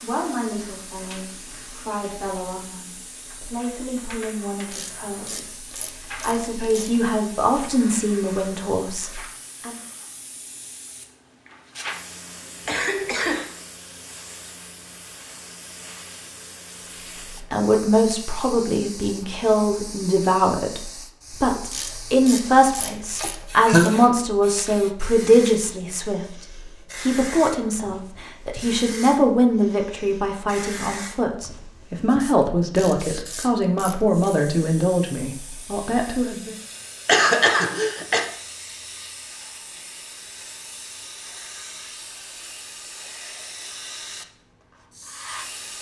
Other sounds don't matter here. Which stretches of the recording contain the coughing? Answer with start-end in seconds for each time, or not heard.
12.7-13.5, 23.2-23.9, 37.0-38.2.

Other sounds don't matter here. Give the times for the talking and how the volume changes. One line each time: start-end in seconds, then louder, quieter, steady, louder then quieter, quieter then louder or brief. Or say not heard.
0.0-9.8 louder
17.5-36.5 steady.